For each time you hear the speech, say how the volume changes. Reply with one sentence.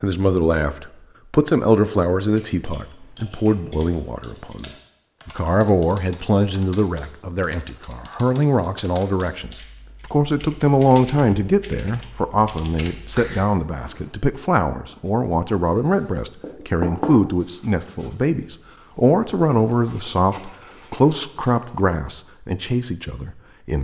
The speech can be heard from 0.0 to 23.7 s, at a steady volume.